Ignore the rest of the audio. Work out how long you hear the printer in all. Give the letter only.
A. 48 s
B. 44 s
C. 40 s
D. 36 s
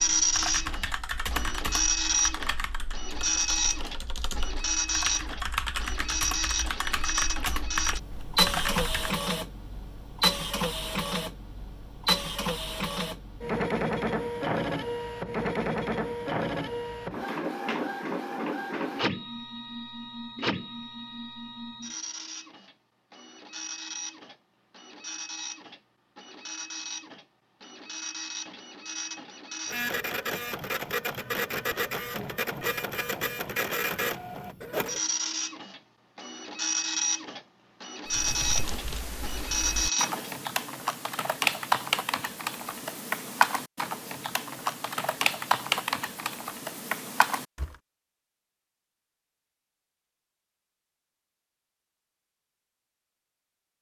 C.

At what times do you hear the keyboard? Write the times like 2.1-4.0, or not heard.
0.0-9.2, 38.0-47.8.